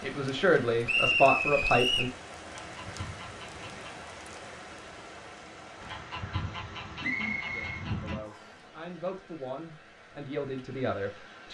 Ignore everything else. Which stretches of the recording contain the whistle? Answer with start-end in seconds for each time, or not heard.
0.8-2.1, 7.0-8.5.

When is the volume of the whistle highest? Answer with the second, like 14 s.
1 s.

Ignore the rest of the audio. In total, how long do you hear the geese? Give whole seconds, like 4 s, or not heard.
4 s.